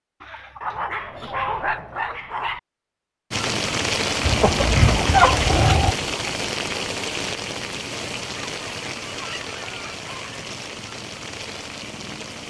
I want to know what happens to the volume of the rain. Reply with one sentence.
The loudness of the rain goes down.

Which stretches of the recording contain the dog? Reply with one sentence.
You can hear the dog from 0.6 to 2.6 s.